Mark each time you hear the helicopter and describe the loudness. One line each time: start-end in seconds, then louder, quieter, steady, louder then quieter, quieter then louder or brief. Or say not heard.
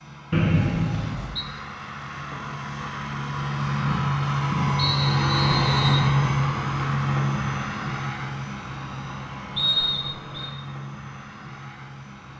0.0-12.3 louder then quieter.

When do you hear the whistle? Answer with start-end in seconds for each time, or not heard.
0.3-1.4, 4.8-6.0, 9.6-10.5.